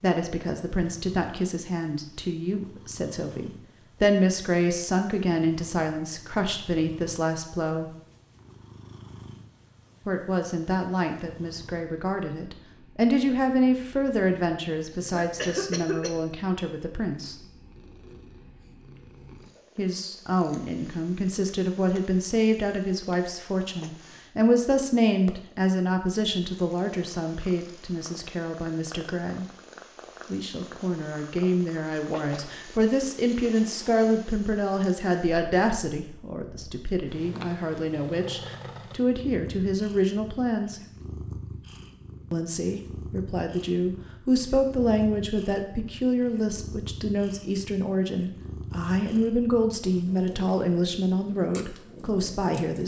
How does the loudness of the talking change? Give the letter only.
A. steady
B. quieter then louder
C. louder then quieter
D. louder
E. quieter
A.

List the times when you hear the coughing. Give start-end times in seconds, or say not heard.
14.9-16.2.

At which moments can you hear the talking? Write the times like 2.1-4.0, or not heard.
0.0-7.9, 10.1-17.4, 19.8-29.4, 30.3-40.8, 42.3-52.8.